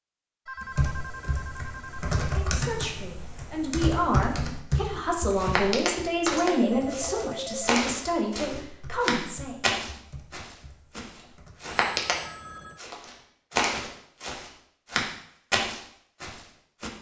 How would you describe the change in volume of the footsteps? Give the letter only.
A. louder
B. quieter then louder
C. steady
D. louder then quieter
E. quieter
C.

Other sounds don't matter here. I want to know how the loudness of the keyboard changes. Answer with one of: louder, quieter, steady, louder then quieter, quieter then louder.
quieter.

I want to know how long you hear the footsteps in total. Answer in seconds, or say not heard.
11 s.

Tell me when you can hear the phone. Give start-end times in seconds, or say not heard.
0.5-2.2, 6.5-7.8, 11.7-12.8.